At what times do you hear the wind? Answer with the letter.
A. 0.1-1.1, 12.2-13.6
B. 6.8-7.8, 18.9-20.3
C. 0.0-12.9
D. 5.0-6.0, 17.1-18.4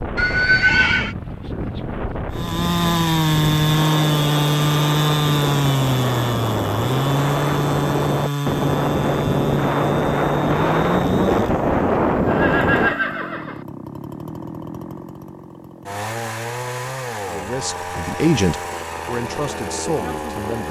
C.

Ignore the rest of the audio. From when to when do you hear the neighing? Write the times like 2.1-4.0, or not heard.
0.1-1.1, 12.2-13.6.